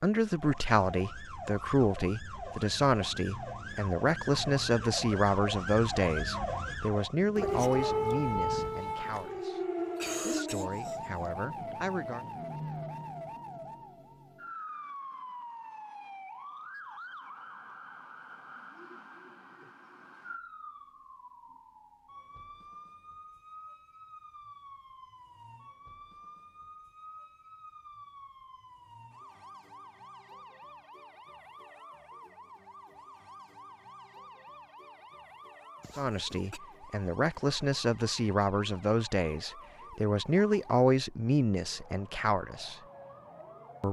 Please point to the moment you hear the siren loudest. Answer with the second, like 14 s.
8 s.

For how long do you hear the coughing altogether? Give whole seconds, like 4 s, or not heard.
3 s.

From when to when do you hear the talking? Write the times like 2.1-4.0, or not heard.
0.0-9.6, 10.2-12.2, 36.0-42.8.